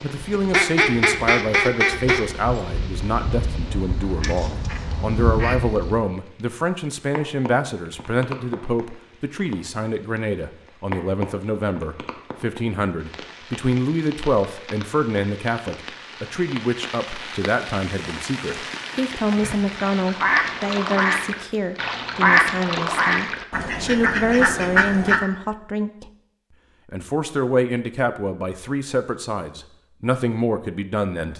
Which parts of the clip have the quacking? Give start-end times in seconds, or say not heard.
0.3-6.0, 19.4-25.2.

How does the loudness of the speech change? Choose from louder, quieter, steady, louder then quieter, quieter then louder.
steady.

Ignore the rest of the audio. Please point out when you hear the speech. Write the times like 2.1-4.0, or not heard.
0.0-26.1, 26.9-31.3.